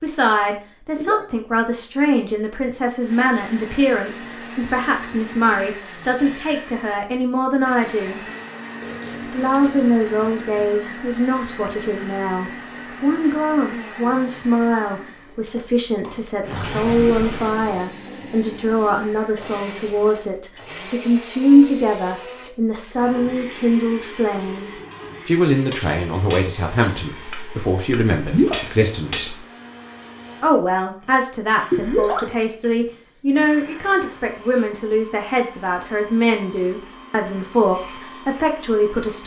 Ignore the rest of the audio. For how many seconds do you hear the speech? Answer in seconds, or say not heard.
37 s.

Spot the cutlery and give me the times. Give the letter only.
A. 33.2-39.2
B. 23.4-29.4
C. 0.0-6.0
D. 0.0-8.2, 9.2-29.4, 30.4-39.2
B.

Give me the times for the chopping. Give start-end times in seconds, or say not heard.
not heard.